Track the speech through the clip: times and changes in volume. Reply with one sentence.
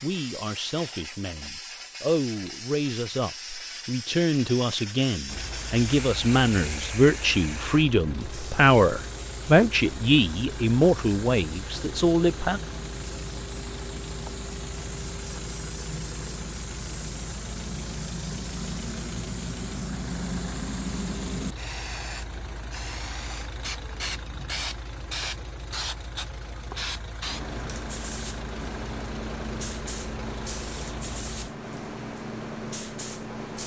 The speech can be heard from 0.0 to 12.6 s, getting louder.